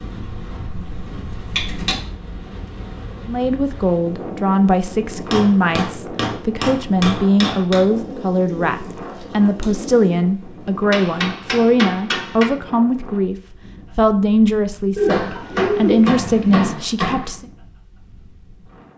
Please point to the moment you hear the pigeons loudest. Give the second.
16 s.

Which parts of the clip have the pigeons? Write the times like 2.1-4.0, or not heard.
0.7-1.9, 7.9-10.2, 14.9-16.7.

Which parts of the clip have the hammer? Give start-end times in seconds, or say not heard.
0.2-1.9, 5.3-7.8, 10.9-12.4, 15.1-17.4.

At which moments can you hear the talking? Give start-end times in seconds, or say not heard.
3.2-13.3, 13.9-17.4.